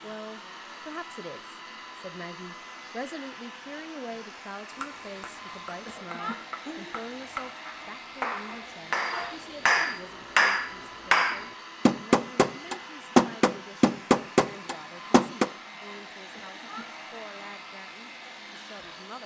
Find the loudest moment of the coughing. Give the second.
6 s.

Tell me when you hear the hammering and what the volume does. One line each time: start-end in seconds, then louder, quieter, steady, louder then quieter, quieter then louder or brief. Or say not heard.
4.7-15.5 louder.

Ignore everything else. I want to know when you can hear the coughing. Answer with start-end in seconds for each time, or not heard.
5.8-7.0, 16.3-16.9.